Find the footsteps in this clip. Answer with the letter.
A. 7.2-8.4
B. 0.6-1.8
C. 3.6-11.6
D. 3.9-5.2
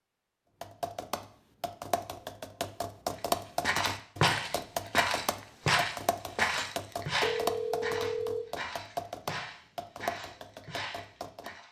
C.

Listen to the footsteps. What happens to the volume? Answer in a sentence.
The volume of the footsteps goes down.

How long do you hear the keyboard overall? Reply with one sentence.
You can hear the keyboard for 11 seconds altogether.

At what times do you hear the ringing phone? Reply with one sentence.
You can hear the ringing phone from 7.2 to 8.4 s.